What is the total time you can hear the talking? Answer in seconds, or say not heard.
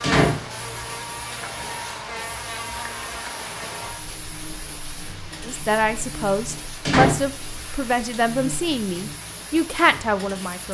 5 s.